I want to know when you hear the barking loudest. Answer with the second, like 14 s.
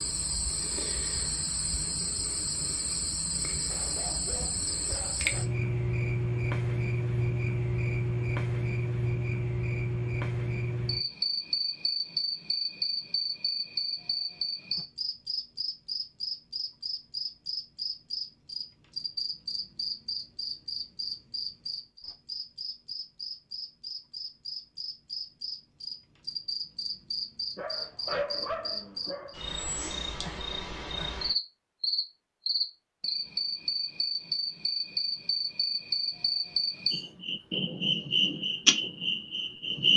28 s.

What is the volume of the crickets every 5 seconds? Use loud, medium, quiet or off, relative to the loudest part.
medium, loud, loud, medium, medium, medium, loud, loud.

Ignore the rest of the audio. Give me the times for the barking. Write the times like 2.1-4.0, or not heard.
3.5-5.5, 27.6-29.4.